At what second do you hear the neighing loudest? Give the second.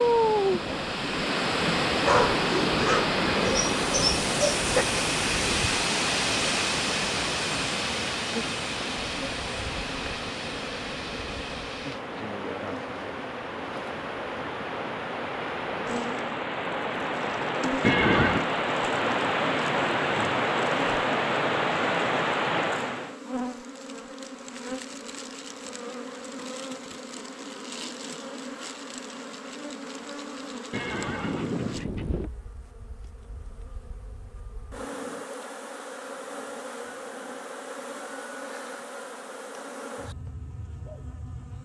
18 s.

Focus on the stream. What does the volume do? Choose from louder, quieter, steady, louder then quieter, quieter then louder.
quieter then louder.